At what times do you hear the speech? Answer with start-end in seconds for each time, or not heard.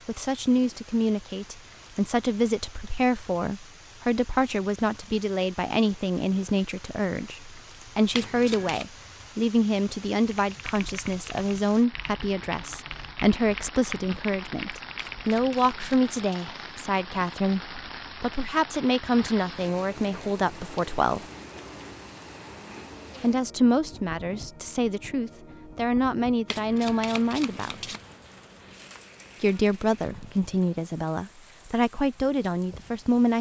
0.1-21.2, 23.2-27.8, 29.4-33.3.